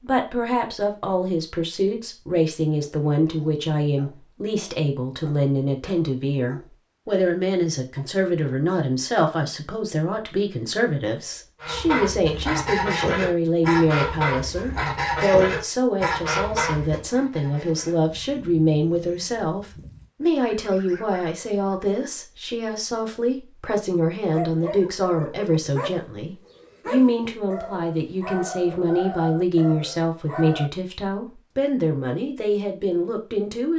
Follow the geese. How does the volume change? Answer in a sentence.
The loudness of the geese goes down.